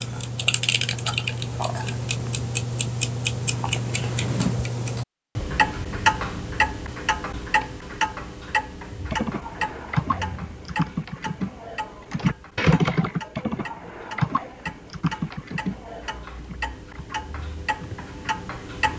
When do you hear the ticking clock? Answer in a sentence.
You can hear the ticking clock from 0.0 to 18.9 s.